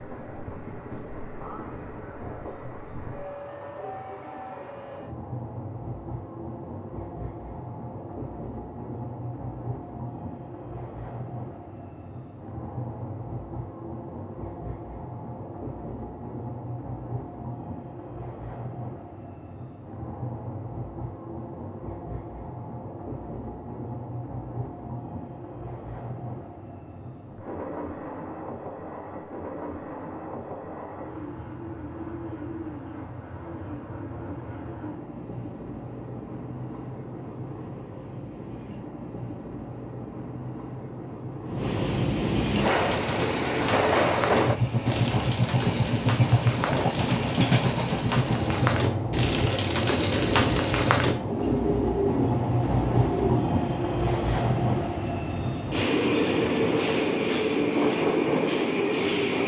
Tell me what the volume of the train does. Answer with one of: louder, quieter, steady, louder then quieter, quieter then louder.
louder.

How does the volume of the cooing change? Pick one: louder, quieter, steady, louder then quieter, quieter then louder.
louder.